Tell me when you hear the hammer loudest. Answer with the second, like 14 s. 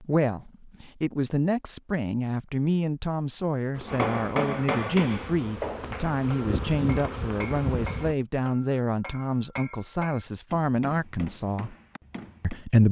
4 s.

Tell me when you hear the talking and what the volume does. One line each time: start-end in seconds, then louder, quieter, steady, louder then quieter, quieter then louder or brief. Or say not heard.
0.0-11.8 steady
12.4-12.8 brief.